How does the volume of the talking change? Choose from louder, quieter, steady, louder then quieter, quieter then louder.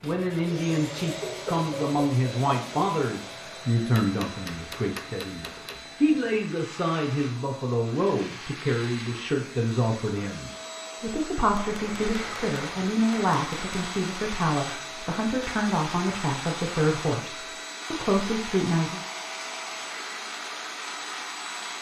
steady.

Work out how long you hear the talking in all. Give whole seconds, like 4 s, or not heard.
19 s.